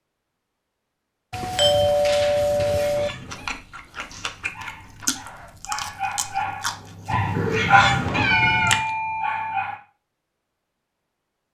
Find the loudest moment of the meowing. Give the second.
8 s.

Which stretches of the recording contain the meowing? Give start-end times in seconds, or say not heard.
2.3-3.5, 7.0-8.8.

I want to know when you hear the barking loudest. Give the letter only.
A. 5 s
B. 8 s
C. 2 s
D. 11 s
B.